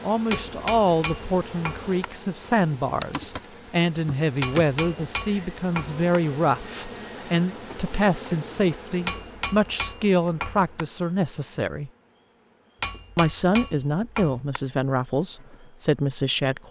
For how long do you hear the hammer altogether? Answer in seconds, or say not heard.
7 s.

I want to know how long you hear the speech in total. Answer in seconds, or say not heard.
15 s.